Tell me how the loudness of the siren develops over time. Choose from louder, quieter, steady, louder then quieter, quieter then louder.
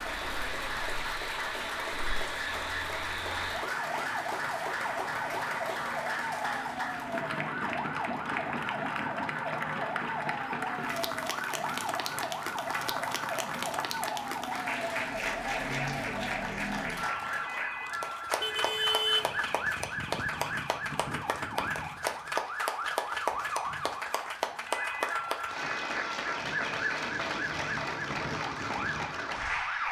steady.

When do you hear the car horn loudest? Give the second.
19 s.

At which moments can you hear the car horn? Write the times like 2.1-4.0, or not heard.
18.4-20.3.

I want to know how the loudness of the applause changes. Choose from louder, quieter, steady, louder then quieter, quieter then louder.
steady.